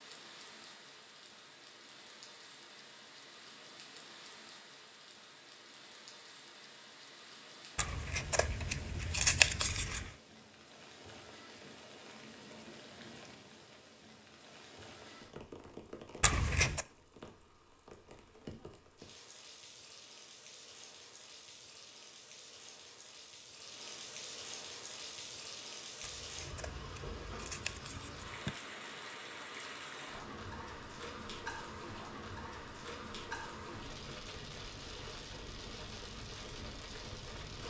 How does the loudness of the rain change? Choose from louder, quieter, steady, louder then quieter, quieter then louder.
louder.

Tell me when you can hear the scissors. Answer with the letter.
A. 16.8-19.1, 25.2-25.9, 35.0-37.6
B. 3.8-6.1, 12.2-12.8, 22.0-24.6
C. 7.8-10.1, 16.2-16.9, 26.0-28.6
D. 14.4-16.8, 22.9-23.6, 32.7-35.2
C.